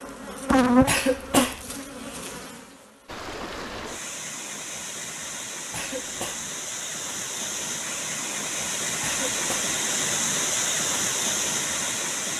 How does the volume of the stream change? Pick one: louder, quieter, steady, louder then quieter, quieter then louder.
louder.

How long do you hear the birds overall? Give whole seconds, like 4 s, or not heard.
not heard.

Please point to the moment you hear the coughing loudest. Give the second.
1 s.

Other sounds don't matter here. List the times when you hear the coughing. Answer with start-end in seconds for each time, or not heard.
0.8-1.6, 5.7-6.5, 9.0-9.8.